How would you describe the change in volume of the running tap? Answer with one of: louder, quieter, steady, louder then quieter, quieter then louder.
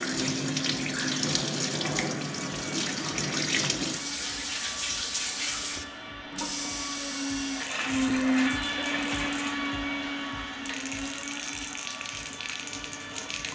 quieter.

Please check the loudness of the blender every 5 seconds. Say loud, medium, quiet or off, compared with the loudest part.
medium, loud, medium.